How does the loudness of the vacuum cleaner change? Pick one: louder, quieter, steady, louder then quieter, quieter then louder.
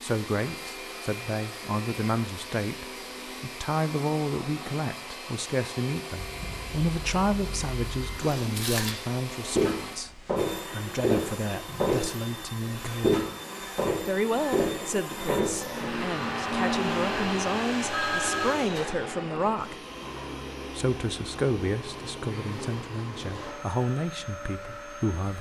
louder then quieter.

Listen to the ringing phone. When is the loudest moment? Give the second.
18 s.